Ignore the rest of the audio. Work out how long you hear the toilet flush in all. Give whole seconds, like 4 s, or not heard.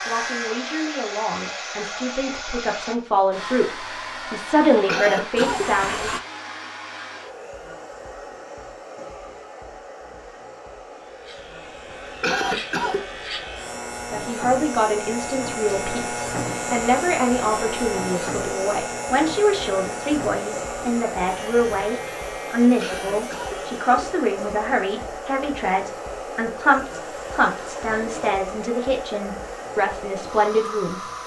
2 s.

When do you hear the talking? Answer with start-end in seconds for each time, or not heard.
0.1-6.2, 14.1-31.1.